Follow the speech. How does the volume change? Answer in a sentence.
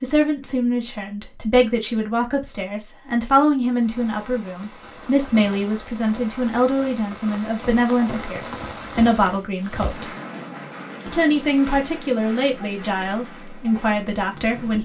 The volume of the speech stays about the same.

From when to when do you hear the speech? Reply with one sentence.
You can hear the speech from 0.0 to 10.1 s and from 11.1 to 14.7 s.